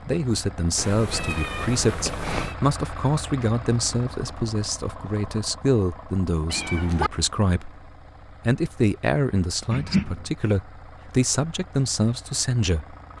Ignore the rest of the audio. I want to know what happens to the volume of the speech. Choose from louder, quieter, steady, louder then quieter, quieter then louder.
steady.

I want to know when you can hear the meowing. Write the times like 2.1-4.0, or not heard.
0.8-2.5, 6.5-7.1, 9.7-10.3.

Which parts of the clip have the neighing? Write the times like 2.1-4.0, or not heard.
not heard.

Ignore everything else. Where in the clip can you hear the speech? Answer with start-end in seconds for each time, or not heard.
0.1-7.8, 8.4-12.9.